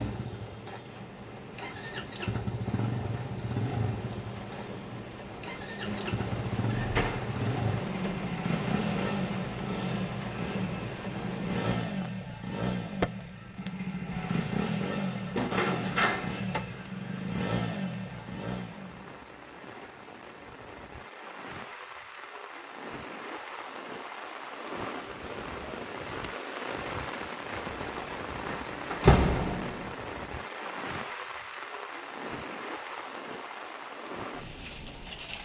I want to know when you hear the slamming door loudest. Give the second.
29 s.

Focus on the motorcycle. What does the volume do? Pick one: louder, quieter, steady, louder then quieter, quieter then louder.
steady.